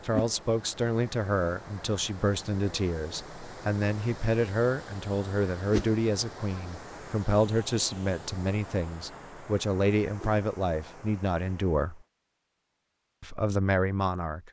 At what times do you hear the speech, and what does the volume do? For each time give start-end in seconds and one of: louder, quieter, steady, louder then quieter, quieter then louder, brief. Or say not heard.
0.0-12.0 steady
13.2-14.4 brief.